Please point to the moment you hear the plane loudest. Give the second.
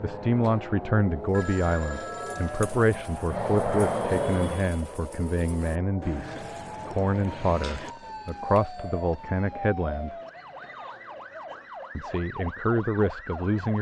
4 s.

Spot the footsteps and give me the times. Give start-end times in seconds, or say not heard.
not heard.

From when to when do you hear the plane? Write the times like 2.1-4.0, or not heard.
0.0-4.8.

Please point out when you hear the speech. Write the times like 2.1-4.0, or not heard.
0.0-10.2, 11.9-13.7.